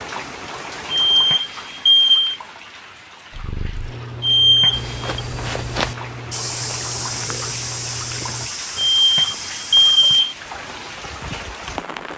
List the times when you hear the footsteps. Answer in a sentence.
You can hear the footsteps from 4.7 to 10.2 s.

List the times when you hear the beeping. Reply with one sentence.
The beeping can be heard from 0.9 to 2.4 s, from 4.2 to 5.2 s and from 8.9 to 10.3 s.